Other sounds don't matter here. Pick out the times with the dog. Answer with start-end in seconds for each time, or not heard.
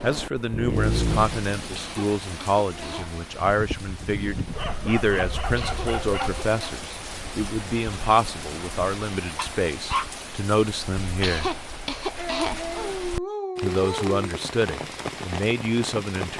0.3-1.4, 4.5-6.5, 9.3-10.1, 12.7-14.2.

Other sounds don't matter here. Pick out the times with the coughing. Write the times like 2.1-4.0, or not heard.
1.8-3.2, 5.5-6.8, 11.2-12.9.